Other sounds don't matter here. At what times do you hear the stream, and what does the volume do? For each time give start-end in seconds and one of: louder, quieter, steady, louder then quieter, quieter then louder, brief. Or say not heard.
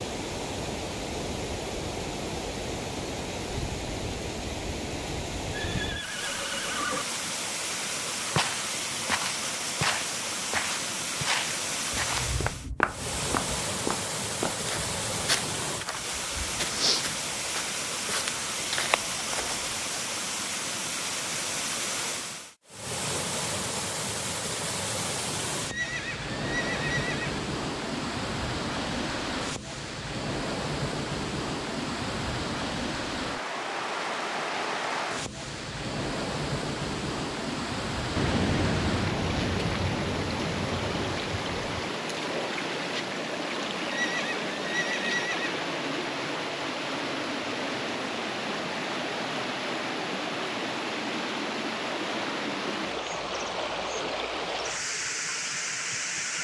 0.0-56.3 steady.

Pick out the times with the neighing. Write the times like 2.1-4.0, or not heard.
5.5-7.0, 25.7-27.4, 43.9-45.5.